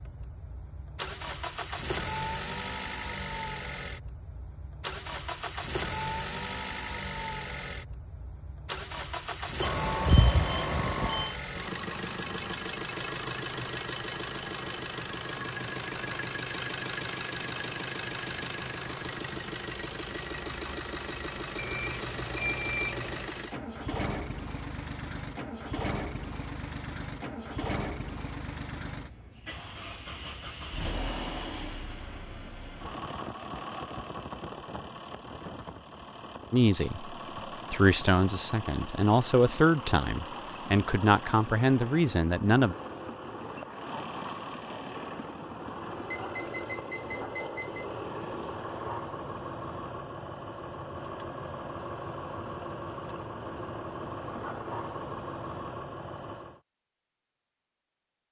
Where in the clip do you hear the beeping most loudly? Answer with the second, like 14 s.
10 s.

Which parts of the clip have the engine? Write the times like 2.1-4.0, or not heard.
0.0-56.6.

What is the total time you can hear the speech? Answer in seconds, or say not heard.
6 s.